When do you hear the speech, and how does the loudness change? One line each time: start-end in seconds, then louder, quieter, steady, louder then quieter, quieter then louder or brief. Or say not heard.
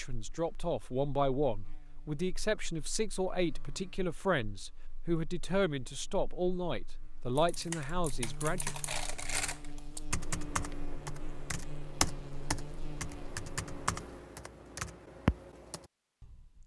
0.0-8.7 steady.